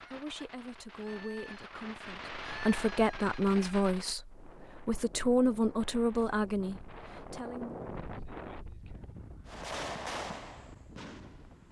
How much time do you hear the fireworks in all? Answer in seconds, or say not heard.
6 s.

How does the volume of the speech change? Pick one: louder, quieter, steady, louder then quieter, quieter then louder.
louder.